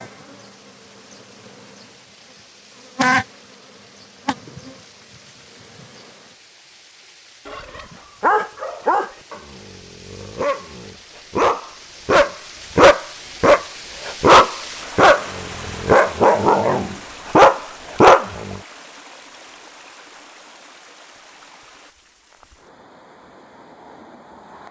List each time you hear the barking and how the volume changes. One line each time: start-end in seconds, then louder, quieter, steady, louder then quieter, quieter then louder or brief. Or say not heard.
7.5-18.6 louder.